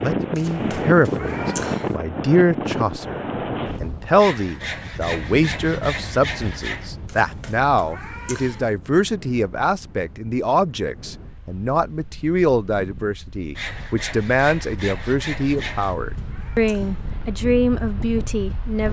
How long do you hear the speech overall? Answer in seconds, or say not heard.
18 s.